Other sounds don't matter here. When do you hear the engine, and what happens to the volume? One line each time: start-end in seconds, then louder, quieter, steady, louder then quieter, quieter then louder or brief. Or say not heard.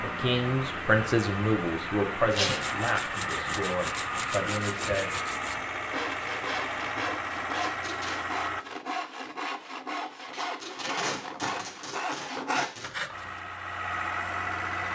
0.0-8.7 steady
13.1-14.9 brief.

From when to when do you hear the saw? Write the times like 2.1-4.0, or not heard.
2.5-13.4.